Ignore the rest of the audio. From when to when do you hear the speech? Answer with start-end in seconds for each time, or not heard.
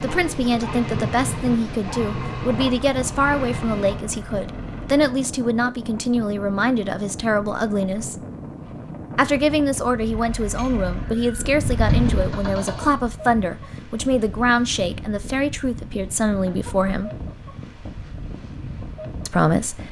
0.0-8.2, 9.2-17.1, 19.2-19.8.